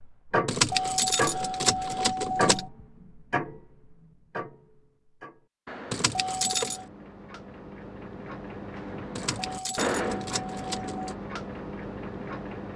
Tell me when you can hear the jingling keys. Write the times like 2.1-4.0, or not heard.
0.5-2.6, 5.9-6.8, 9.2-11.2.